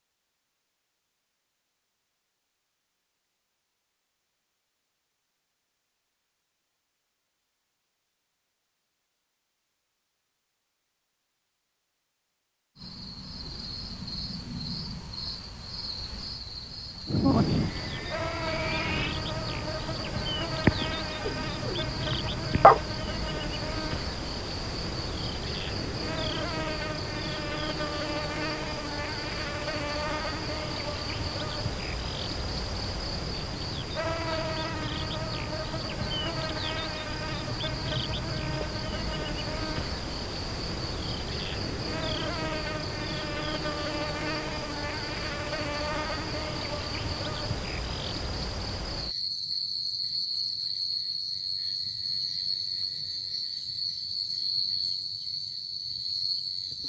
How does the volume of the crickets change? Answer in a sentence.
The loudness of the crickets stays about the same.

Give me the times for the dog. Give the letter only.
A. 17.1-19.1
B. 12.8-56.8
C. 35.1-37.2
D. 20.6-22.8
D.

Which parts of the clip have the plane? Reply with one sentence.
The plane can be heard from 17.1 to 19.1 s.